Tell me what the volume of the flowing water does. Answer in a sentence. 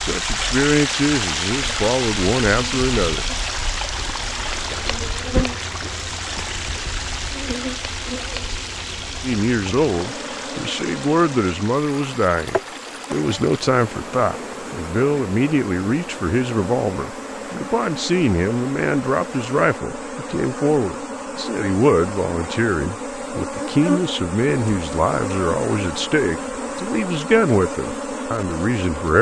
The volume of the flowing water goes down.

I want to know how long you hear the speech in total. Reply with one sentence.
The speech can be heard for 23 seconds in total.